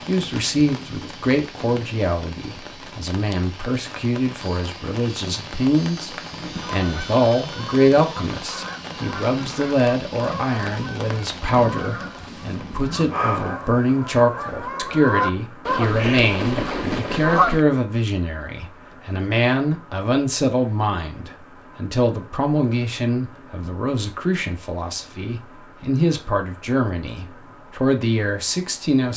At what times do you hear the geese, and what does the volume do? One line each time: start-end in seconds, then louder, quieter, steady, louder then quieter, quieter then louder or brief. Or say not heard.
6.5-17.6 louder.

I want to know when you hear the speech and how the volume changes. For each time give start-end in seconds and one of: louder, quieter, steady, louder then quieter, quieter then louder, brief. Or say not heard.
0.1-29.1 steady.